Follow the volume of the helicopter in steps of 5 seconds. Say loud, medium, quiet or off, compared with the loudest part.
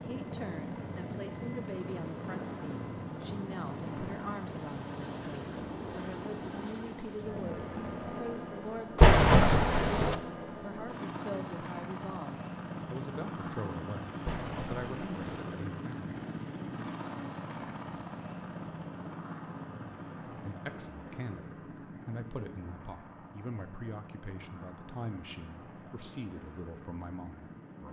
loud, loud, loud, loud, medium, medium.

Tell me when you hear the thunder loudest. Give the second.
9 s.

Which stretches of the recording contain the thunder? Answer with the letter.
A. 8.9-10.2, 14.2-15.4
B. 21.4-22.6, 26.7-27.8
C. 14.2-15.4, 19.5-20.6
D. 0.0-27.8
A.